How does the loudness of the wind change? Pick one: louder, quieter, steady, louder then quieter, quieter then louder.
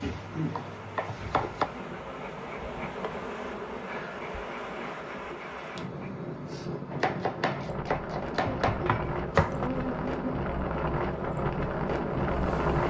louder.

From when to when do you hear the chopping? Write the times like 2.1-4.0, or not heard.
0.0-1.6, 6.9-9.7.